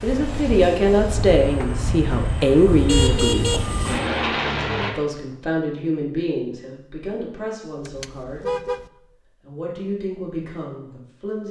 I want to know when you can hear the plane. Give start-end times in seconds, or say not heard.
0.0-4.9.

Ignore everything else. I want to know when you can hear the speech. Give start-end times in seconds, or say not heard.
0.0-8.5, 9.4-11.4.